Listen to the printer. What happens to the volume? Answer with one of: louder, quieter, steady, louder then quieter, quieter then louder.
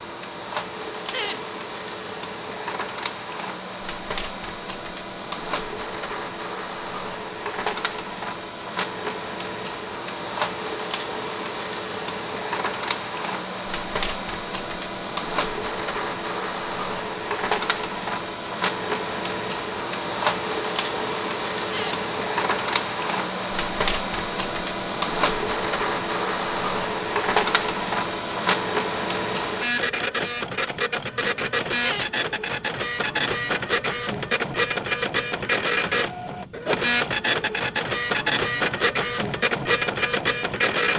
louder.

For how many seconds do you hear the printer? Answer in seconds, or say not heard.
41 s.